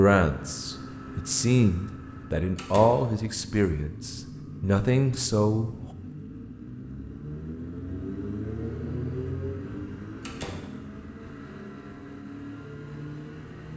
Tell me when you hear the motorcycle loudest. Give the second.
9 s.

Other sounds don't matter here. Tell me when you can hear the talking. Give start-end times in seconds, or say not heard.
0.0-5.7.